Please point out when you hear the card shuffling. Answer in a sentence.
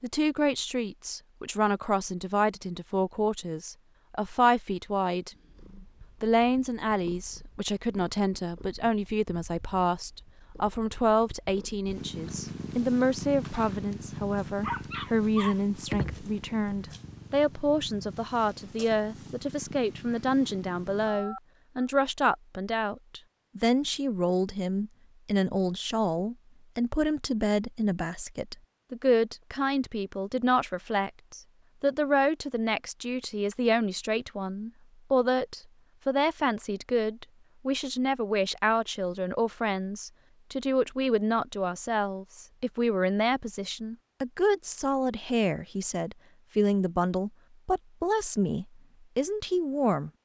The card shuffling can't be heard in this clip.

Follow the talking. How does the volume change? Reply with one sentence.
The loudness of the talking stays about the same.